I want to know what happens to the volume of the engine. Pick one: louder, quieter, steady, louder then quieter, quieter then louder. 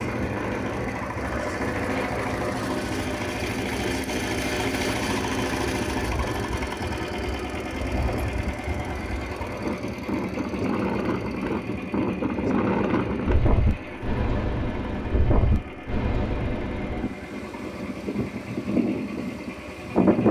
quieter.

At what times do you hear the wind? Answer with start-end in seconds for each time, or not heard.
0.0-20.2.